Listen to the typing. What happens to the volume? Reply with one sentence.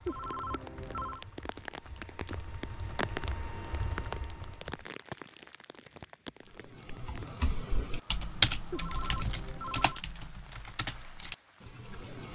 The loudness of the typing goes up, then down.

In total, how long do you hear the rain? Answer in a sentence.
The rain can be heard for 12 seconds in total.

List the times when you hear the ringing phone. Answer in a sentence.
You can hear the ringing phone from 0.1 to 1.2 s and from 8.7 to 10.0 s.